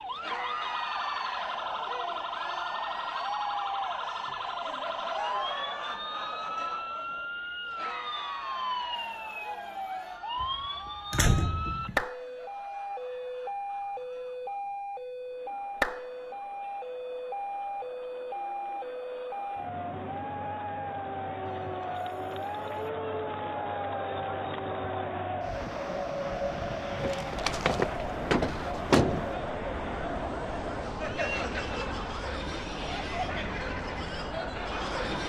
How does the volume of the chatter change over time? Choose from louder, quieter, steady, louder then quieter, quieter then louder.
quieter then louder.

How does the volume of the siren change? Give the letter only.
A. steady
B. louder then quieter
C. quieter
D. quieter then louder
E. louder
A.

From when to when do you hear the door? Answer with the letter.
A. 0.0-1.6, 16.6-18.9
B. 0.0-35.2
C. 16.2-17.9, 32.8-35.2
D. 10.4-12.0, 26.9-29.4
D.